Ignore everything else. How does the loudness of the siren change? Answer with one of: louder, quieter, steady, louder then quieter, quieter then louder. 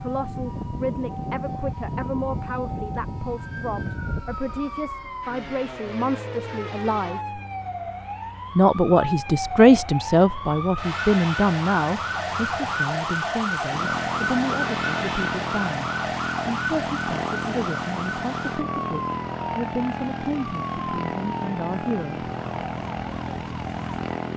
louder then quieter.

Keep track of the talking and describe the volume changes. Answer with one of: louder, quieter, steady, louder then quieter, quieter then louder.
louder then quieter.